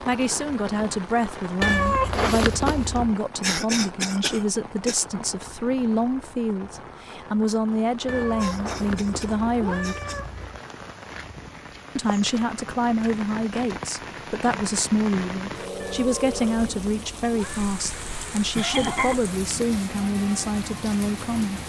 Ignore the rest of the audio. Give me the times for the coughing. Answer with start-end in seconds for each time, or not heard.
3.4-5.0, 8.3-10.2, 18.6-19.2.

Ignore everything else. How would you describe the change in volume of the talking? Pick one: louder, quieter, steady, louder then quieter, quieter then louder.
steady.